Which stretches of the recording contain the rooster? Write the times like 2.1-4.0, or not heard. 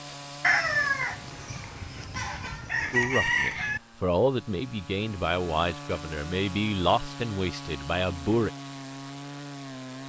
0.4-3.8.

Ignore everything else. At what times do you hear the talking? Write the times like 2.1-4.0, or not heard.
2.9-8.5.